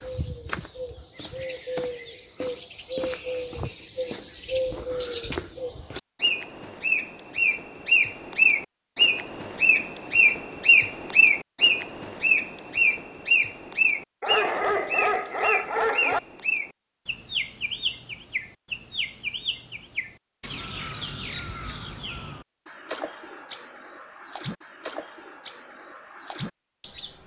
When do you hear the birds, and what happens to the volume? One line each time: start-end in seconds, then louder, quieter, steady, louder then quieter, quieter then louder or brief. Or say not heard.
0.0-27.2 louder then quieter.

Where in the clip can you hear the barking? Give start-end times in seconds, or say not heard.
14.2-16.2.